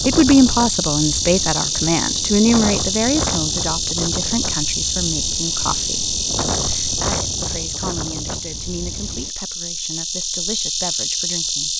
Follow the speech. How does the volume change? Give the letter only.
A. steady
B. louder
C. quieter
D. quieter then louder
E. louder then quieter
C.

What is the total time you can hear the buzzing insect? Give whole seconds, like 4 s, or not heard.
12 s.